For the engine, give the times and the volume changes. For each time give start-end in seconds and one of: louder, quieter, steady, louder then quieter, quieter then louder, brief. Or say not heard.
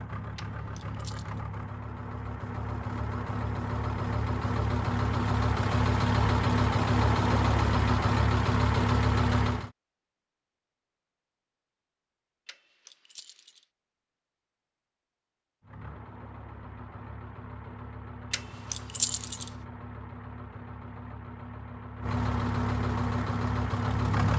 0.0-9.7 louder
15.6-24.3 louder.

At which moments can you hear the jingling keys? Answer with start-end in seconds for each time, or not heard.
0.3-1.4, 12.4-13.6, 18.3-19.5.